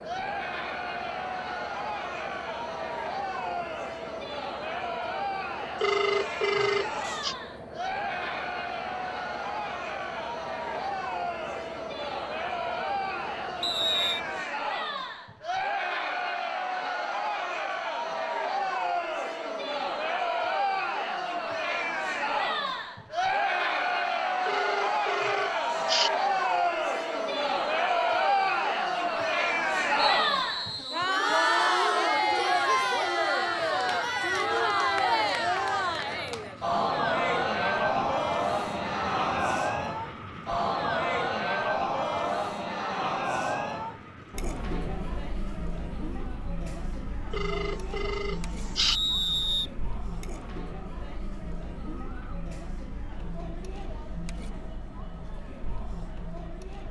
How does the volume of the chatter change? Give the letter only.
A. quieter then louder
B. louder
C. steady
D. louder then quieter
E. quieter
D.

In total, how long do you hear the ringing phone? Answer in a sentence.
The ringing phone can be heard for 5 seconds in total.